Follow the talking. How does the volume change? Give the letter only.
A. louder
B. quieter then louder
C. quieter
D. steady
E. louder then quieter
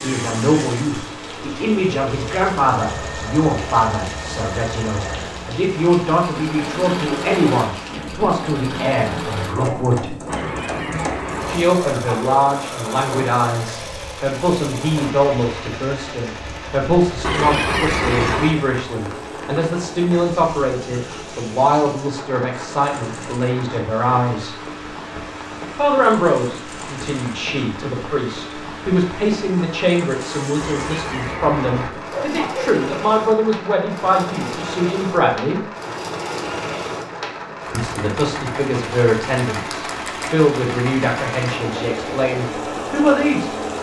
D.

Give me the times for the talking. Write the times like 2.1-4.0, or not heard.
0.0-10.2, 11.4-24.6, 25.8-35.6, 37.7-43.5.